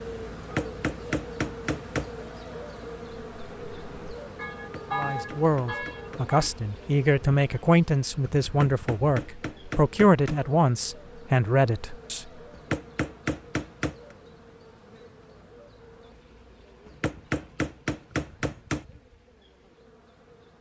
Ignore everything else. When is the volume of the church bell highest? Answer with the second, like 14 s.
5 s.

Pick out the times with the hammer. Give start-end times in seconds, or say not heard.
0.3-2.1, 4.8-6.5, 8.7-10.4, 12.5-13.9, 16.9-18.9.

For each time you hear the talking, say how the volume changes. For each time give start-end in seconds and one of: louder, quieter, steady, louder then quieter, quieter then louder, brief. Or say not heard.
4.9-12.2 steady.